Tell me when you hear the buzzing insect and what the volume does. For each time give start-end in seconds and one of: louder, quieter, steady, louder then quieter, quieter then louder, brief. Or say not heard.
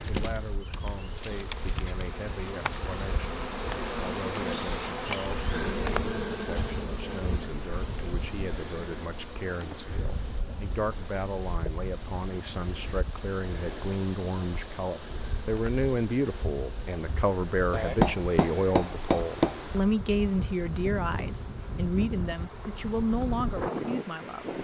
0.0-24.5 quieter.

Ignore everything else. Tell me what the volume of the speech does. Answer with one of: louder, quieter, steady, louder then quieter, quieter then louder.
louder.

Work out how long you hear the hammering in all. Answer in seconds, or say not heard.
2 s.